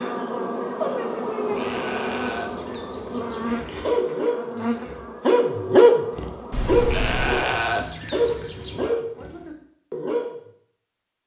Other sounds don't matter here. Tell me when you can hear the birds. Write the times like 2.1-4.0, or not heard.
not heard.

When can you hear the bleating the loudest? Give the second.
8 s.